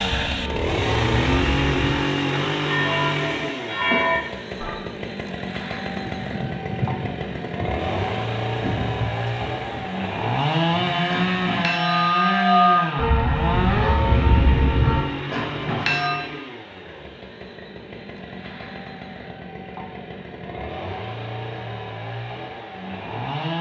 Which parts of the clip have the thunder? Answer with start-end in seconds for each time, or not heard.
5.9-9.8.